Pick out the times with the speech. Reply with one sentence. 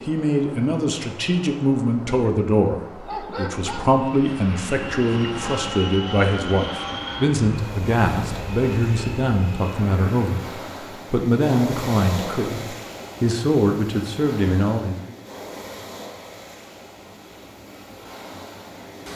You can hear the speech from 0.0 to 15.2 s.